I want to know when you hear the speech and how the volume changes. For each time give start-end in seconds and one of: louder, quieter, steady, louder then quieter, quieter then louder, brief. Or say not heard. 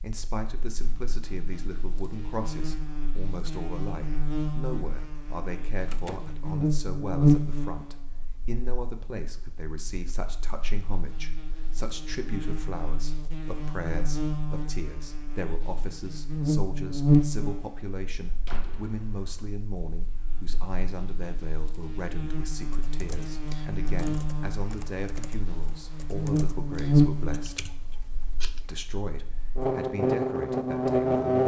0.0-27.6 steady
28.6-31.4 brief.